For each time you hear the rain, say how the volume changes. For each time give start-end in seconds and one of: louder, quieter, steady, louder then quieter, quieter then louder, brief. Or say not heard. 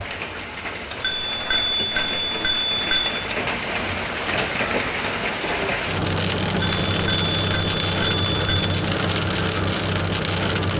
0.0-10.7 louder.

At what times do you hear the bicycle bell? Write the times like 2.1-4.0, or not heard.
1.0-3.0, 6.6-8.6.